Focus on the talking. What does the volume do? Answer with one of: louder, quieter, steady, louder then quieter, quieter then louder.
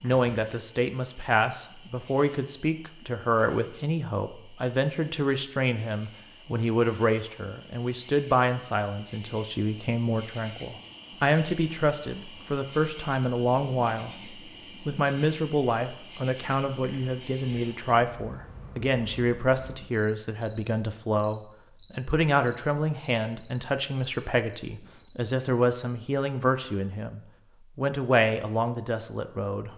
steady.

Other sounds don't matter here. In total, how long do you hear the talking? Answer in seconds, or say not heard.
30 s.